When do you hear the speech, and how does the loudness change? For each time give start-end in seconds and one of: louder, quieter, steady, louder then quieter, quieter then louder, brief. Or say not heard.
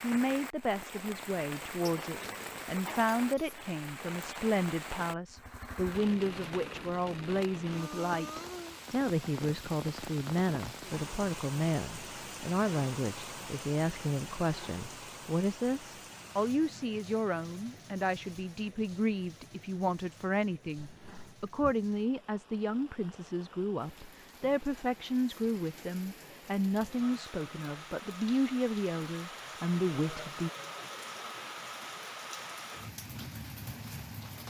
0.0-30.5 steady.